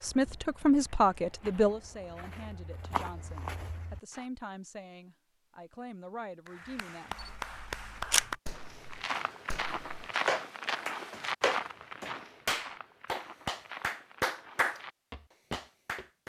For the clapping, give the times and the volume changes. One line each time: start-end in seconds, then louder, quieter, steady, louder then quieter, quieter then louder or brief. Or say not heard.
6.5-14.8 quieter then louder
15.5-16.2 brief.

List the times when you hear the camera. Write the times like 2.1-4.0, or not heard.
7.2-8.3.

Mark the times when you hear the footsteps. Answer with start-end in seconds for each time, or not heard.
0.0-4.2, 8.6-16.1.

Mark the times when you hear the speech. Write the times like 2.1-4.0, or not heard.
0.0-7.2.